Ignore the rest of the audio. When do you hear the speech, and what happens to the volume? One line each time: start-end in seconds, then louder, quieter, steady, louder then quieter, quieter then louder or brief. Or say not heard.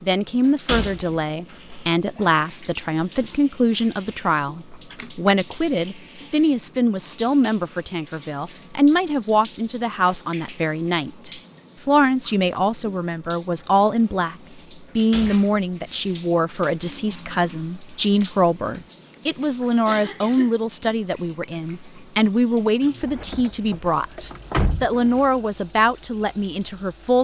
0.0-27.2 steady.